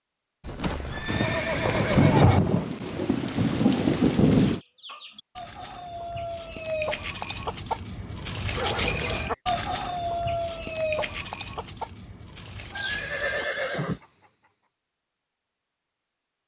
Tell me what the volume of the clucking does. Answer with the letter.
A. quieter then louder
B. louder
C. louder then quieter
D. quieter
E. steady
C.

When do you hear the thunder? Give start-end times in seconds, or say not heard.
1.1-4.6.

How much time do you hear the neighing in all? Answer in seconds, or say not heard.
4 s.